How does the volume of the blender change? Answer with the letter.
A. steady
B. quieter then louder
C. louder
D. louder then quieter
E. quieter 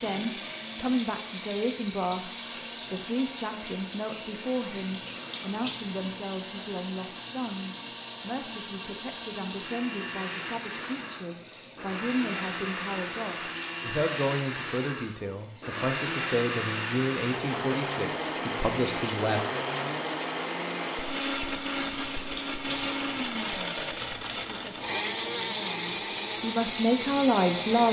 C.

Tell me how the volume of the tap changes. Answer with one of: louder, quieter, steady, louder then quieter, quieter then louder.
quieter then louder.